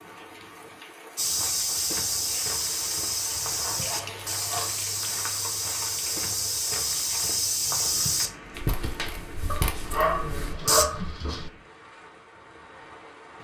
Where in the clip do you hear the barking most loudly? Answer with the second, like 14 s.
10 s.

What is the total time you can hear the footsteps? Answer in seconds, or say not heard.
10 s.